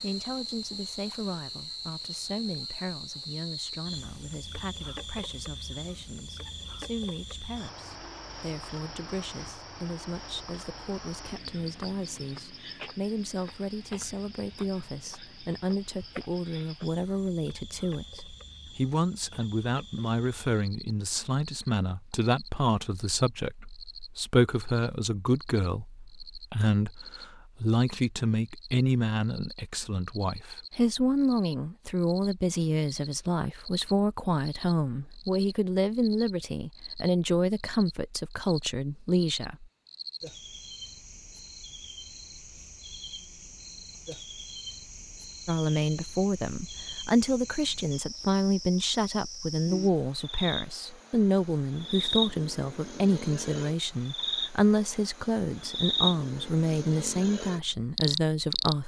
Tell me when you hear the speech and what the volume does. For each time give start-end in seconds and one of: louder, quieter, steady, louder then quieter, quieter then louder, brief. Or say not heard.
0.0-39.6 louder
45.5-58.8 steady.